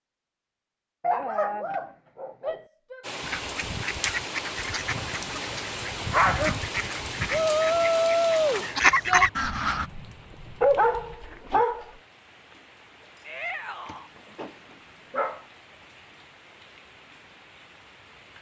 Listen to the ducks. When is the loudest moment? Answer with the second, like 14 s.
9 s.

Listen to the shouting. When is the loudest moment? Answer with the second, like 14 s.
8 s.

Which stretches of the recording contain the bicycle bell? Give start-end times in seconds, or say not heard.
not heard.